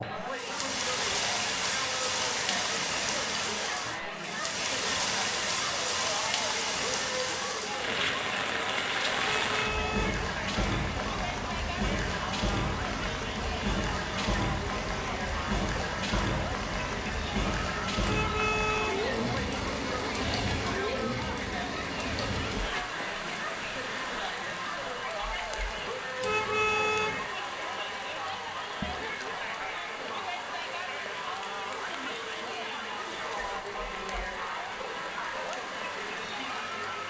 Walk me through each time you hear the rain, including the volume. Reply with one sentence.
The rain can be heard from 0.0 to 37.0 s, getting quieter.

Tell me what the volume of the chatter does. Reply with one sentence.
The loudness of the chatter stays about the same.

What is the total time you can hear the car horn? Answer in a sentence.
You can hear the car horn for 3 seconds altogether.